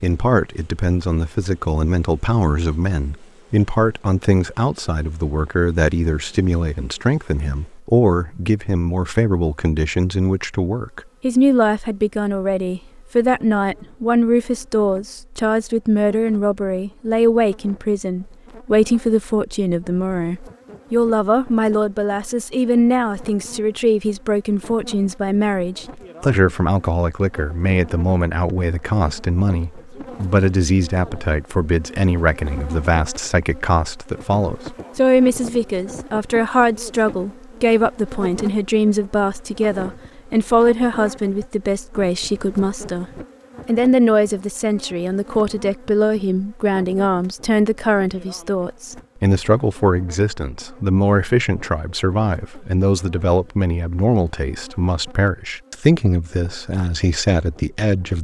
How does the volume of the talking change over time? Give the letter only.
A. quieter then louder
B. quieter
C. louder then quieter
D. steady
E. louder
D.